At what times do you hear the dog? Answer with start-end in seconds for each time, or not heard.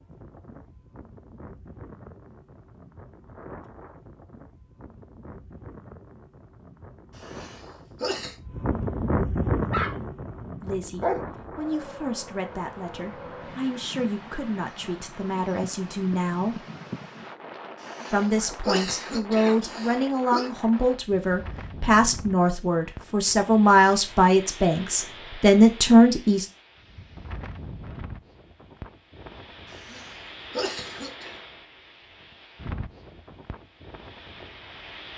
9.6-11.2.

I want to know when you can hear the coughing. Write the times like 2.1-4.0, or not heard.
7.2-8.3, 17.8-20.5, 29.7-31.4.